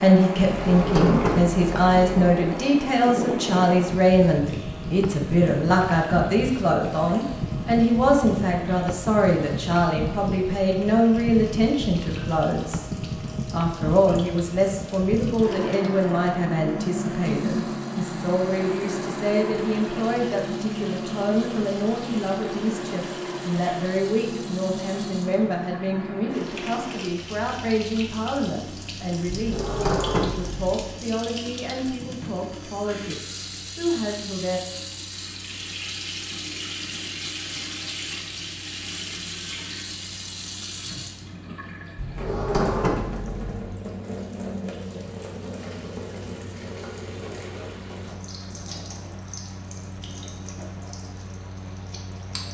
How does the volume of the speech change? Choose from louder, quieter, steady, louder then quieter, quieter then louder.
quieter.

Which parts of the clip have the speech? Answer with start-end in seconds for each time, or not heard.
0.0-12.8, 13.5-34.6.